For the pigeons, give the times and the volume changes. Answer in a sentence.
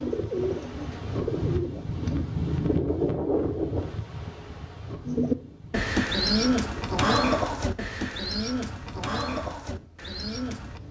The pigeons can be heard briefly from 0.0 to 2.2 s; and from 5.0 to 10.8 s, getting quieter.